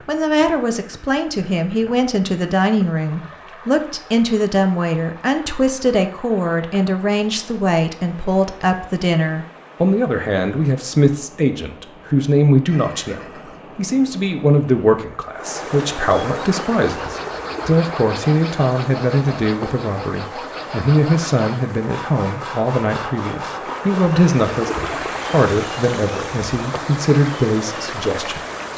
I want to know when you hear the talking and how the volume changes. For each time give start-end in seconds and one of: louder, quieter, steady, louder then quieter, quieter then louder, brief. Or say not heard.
0.1-28.7 steady.